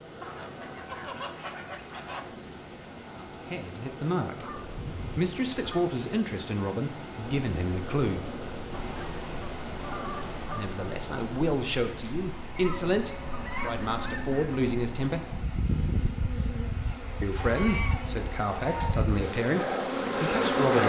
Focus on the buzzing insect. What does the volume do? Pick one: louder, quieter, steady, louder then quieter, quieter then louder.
louder.